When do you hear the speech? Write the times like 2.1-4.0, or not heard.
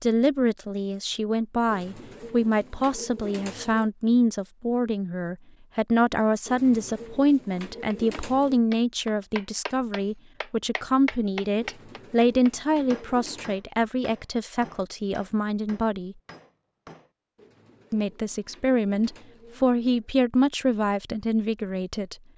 0.0-16.1, 17.9-22.1.